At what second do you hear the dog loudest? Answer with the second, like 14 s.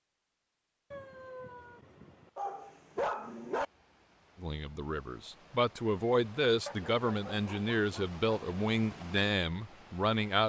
3 s.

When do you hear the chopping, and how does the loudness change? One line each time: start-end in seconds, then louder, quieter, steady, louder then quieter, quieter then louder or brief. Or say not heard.
not heard.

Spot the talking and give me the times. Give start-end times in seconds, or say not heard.
4.4-10.4.